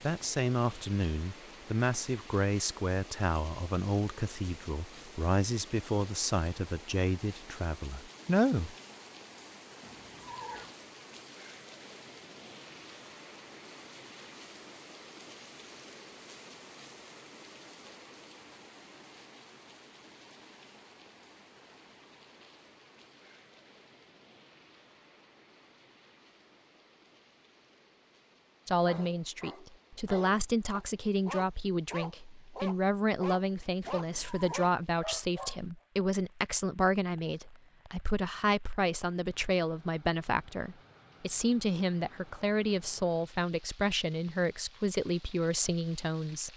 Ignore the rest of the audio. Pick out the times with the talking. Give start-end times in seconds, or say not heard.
0.0-8.8, 28.6-46.5.